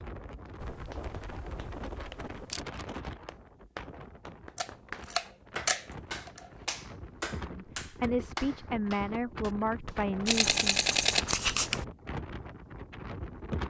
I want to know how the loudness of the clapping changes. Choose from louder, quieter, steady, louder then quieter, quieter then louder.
louder.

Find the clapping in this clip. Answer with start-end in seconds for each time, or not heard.
0.5-10.2.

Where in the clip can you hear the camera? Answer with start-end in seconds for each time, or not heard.
0.6-2.6, 4.5-6.5, 10.2-11.8.